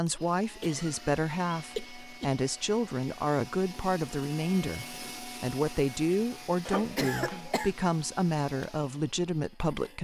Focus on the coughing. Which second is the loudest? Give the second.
7 s.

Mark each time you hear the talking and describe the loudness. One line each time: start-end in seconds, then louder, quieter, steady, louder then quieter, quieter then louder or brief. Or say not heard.
0.0-9.9 steady.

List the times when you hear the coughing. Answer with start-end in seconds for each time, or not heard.
0.6-2.4, 6.7-7.8.